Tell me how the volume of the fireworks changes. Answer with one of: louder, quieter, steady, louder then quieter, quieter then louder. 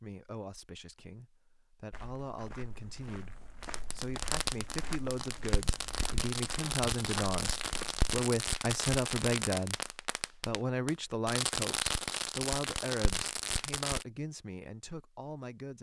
steady.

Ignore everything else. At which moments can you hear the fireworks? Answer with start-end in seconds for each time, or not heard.
3.6-14.1.